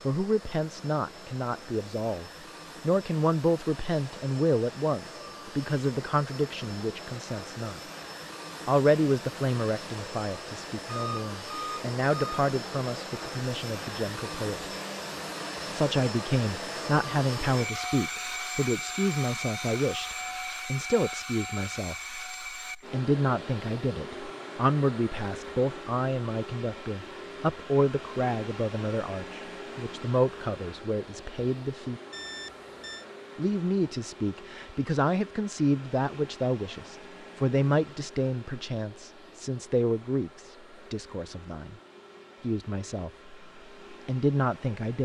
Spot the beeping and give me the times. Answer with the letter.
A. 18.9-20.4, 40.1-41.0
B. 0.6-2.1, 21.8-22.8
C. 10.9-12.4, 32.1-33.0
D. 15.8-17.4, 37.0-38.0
C.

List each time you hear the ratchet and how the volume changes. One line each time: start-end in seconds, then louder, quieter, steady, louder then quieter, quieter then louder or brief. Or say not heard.
not heard.